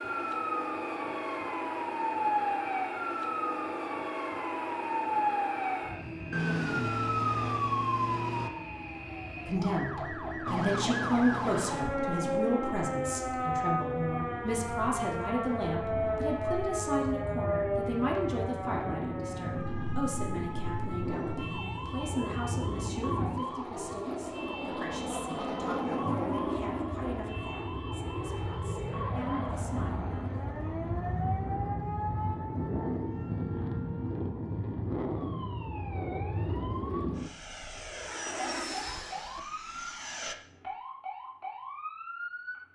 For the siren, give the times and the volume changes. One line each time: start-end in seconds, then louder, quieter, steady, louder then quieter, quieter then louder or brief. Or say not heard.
0.0-42.6 quieter.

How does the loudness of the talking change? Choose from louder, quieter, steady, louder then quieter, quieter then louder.
quieter.